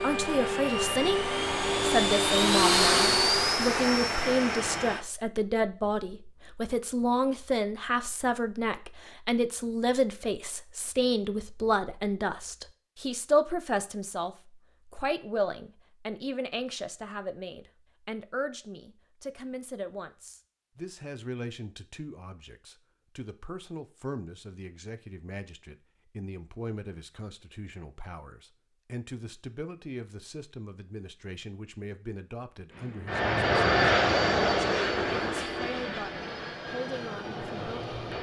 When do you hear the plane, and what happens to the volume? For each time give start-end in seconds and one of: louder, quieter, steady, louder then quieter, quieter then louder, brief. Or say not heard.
0.0-5.0 louder then quieter
32.7-38.1 quieter.